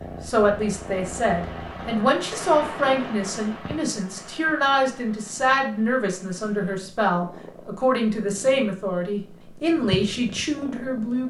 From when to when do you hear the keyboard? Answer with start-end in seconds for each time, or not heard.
not heard.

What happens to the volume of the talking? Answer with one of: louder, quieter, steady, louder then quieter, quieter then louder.
steady.